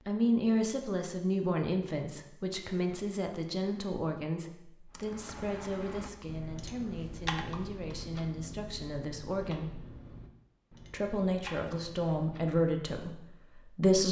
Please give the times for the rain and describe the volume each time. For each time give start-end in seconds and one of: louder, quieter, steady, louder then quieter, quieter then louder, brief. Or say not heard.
not heard.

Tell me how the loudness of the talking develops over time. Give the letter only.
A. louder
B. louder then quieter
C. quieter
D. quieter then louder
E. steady
D.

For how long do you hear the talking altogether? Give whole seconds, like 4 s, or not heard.
13 s.